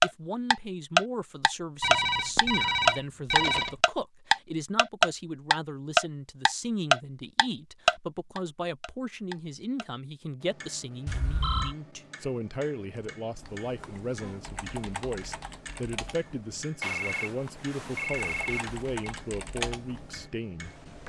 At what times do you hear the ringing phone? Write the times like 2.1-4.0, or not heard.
1.8-3.8, 11.1-11.8, 16.8-19.1.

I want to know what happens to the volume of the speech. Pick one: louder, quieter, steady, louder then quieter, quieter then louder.
steady.